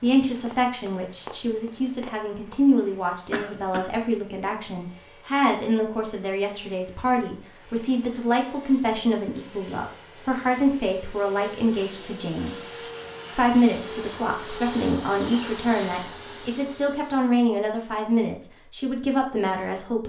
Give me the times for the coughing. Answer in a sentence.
You can hear the coughing from 3.3 to 3.9 s.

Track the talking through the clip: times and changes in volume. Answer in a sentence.
You can hear the talking from 0.0 to 20.0 s, at a steady volume.